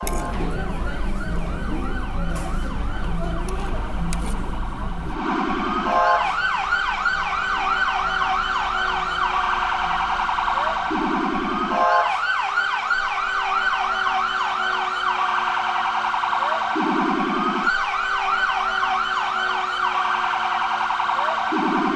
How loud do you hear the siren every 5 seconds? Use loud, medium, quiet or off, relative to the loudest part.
quiet, loud, loud, loud, loud.